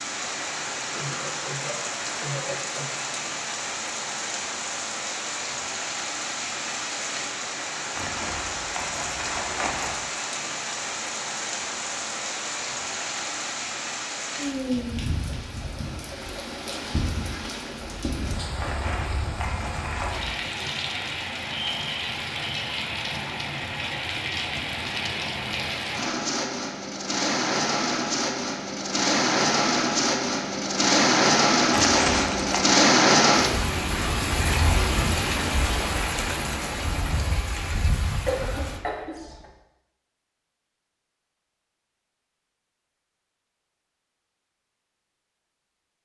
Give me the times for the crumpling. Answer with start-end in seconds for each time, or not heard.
8.0-9.9, 18.6-20.2, 31.7-32.6.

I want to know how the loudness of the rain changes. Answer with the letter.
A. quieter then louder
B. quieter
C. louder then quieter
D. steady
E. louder
E.